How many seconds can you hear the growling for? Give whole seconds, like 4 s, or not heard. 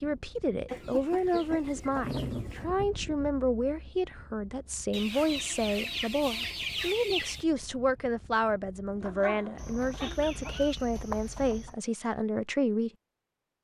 2 s.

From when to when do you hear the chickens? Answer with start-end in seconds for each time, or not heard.
0.7-2.6, 4.9-7.5, 9.6-11.8.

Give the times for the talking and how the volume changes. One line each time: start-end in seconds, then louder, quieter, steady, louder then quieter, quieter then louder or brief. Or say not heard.
0.0-12.9 steady.